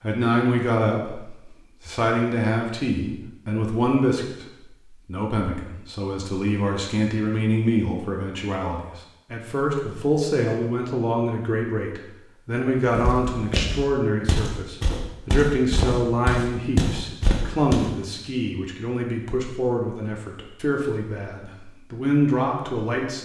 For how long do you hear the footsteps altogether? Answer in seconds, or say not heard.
5 s.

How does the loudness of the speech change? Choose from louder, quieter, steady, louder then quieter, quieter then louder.
steady.